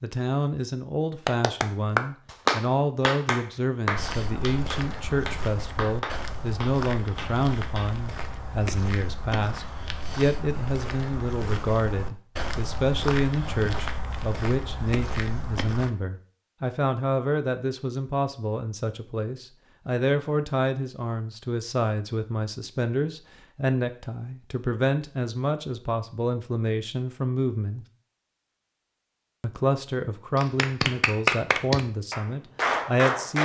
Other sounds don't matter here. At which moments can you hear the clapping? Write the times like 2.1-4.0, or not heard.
1.2-8.0, 30.4-33.3.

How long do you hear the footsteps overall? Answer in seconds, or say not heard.
12 s.